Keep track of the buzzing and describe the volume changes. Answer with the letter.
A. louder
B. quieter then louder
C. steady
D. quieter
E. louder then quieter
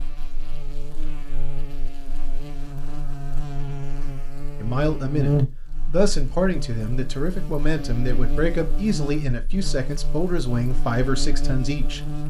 E.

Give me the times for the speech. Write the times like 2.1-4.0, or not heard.
4.6-12.0.